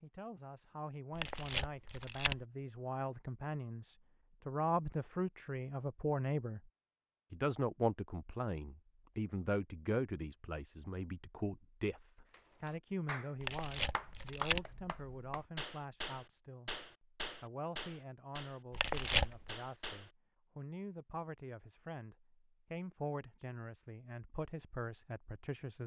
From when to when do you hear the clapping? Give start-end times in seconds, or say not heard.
12.3-20.1.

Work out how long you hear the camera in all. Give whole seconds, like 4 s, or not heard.
3 s.